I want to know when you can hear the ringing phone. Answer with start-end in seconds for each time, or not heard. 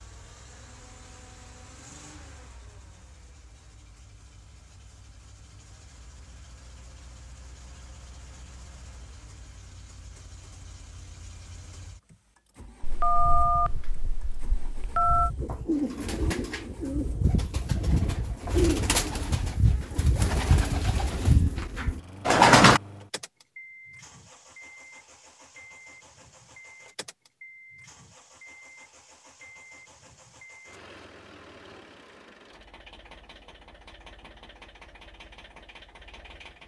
12.8-15.3.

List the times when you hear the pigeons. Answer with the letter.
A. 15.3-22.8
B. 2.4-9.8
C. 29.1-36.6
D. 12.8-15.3
A.